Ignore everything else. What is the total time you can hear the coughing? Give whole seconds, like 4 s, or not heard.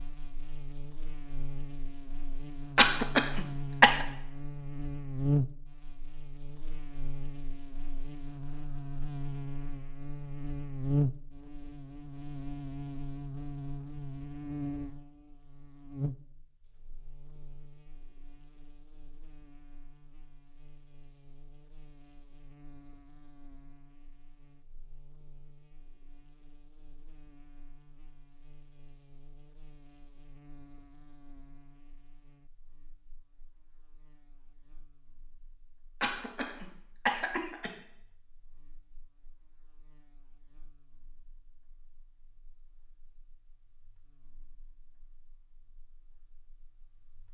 3 s.